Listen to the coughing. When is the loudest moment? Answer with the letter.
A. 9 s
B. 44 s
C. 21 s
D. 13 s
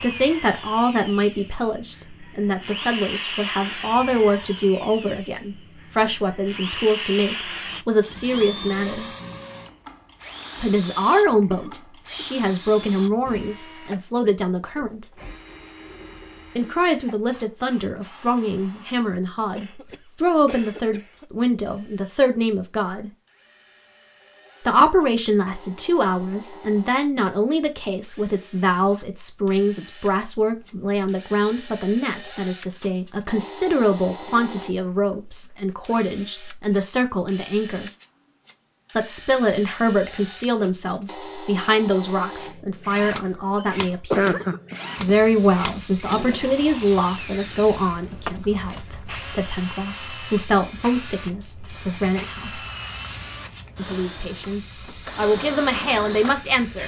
B.